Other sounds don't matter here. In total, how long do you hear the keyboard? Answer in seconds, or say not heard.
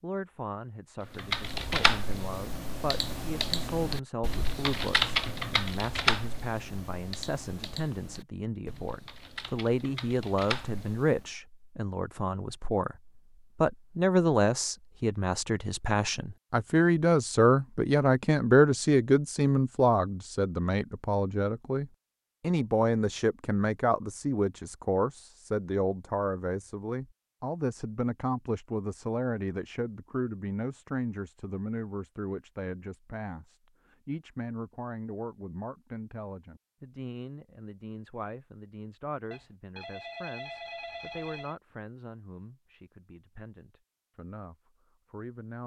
10 s.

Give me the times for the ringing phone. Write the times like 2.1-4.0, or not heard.
39.3-41.5.